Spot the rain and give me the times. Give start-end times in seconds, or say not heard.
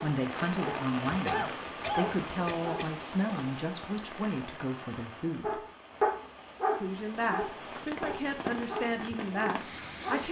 0.0-10.2.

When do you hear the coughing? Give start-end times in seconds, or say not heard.
1.2-2.9.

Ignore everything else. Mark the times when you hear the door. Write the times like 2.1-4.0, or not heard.
not heard.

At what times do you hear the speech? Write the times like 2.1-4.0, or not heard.
0.0-5.6, 6.8-10.2.